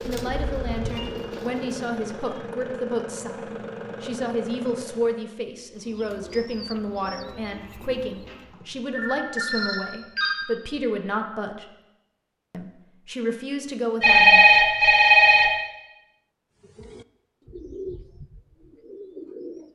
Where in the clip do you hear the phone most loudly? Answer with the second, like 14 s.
14 s.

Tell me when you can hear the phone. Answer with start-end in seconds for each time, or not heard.
0.2-1.1, 8.2-10.3, 14.0-15.5.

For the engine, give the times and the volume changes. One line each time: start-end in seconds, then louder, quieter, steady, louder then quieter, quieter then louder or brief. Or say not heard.
0.0-5.3 steady.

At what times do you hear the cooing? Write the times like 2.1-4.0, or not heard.
0.0-2.2, 5.7-8.6, 16.6-19.6.